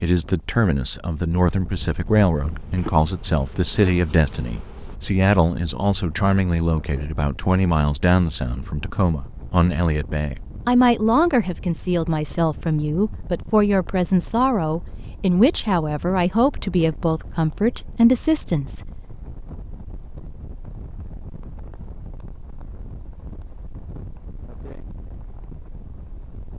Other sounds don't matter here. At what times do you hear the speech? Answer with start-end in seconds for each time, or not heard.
0.0-19.1.